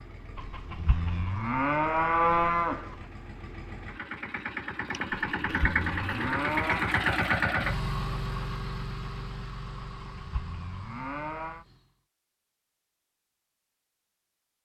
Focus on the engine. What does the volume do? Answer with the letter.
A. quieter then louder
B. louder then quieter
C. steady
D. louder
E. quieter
B.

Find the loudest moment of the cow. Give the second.
2 s.